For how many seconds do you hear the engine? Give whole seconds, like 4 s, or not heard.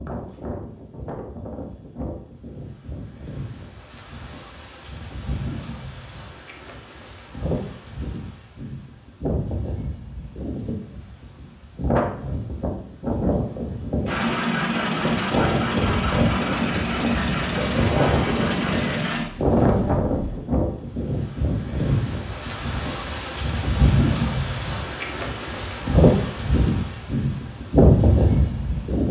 6 s.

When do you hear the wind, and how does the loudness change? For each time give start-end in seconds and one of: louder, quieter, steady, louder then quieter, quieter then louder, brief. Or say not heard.
0.0-29.0 louder.